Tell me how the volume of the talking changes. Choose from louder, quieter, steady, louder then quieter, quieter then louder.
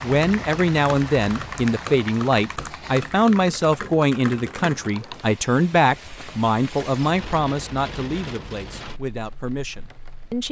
quieter.